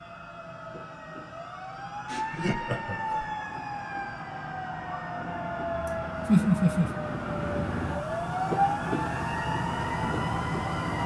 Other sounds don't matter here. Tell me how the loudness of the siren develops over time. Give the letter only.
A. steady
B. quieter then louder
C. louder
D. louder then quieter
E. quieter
C.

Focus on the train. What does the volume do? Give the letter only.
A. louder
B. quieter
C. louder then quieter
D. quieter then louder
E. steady
A.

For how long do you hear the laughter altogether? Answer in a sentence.
You can hear the laughter for 2 seconds altogether.